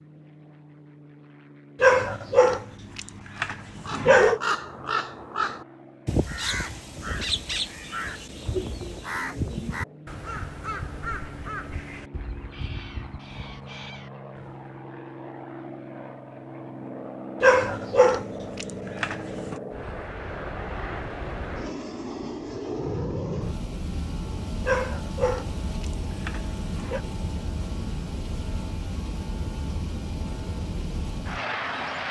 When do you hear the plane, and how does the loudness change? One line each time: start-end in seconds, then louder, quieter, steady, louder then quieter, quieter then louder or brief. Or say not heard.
0.0-32.0 louder.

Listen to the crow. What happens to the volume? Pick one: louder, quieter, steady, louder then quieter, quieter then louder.
quieter.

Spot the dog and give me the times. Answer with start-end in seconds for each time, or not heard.
1.8-4.4, 17.4-19.6, 24.6-27.0.